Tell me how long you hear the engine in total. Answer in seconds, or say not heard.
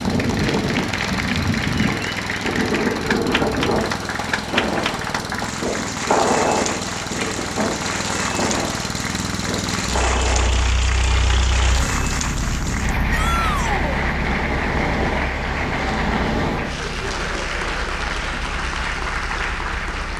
20 s.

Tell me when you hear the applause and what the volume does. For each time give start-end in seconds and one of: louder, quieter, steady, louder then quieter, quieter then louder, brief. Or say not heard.
0.0-20.1 steady.